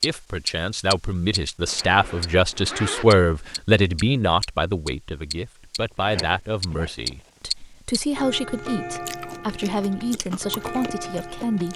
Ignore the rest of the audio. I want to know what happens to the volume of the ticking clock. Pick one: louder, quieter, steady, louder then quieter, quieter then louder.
quieter.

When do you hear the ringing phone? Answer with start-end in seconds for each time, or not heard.
not heard.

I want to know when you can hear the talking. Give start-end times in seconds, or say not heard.
0.0-11.7.